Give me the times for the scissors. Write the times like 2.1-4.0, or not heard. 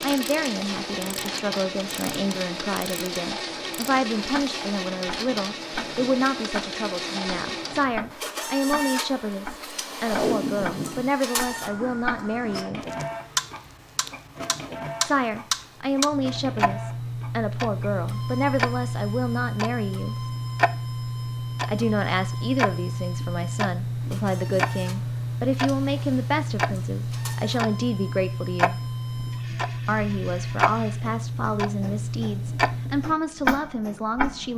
not heard.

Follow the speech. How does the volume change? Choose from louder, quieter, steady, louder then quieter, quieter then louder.
steady.